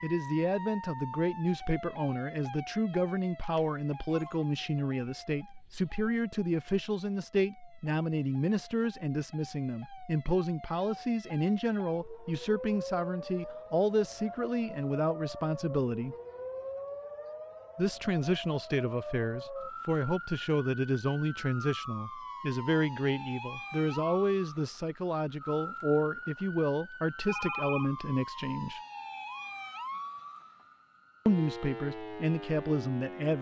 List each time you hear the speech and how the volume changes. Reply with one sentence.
You can hear the speech from 0.0 to 16.1 s, at a steady volume; from 17.8 to 28.8 s, at a steady volume; and briefly from 31.2 to 33.3 s.